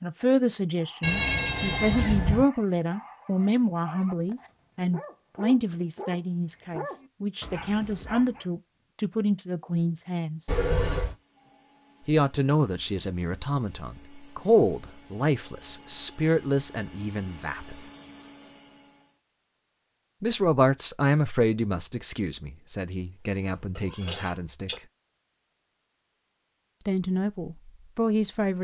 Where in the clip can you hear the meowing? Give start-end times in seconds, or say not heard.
1.0-2.5, 10.4-11.2, 23.8-24.8.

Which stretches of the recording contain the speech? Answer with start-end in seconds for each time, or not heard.
0.0-10.4, 12.1-17.9, 20.2-24.8, 26.9-28.6.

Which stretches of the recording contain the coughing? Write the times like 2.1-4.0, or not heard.
not heard.